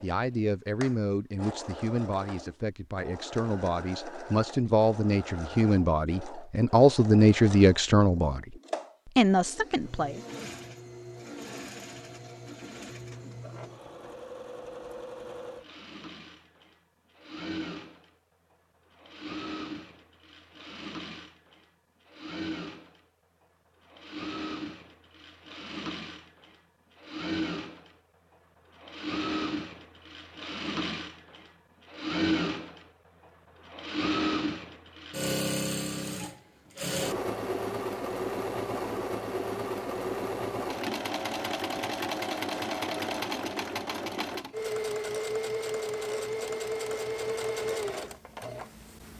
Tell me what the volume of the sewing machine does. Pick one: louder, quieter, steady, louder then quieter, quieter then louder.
louder.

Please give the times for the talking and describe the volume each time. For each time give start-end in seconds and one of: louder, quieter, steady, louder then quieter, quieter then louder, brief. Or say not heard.
0.0-8.4 louder
9.2-10.2 brief.